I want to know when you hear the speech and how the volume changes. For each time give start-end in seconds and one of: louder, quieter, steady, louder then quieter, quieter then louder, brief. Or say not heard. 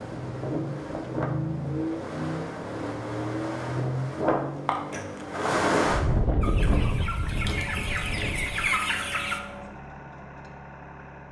not heard.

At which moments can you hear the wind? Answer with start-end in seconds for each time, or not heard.
0.0-8.7.